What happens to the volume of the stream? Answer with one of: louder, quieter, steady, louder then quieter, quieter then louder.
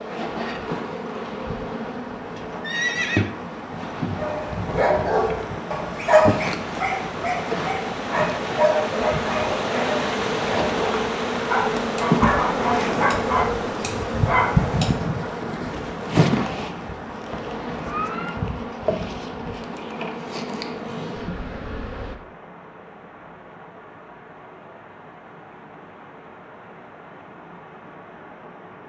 louder then quieter.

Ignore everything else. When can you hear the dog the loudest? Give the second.
6 s.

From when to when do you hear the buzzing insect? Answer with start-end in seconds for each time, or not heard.
0.0-22.1.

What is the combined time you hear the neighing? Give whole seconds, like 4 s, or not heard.
2 s.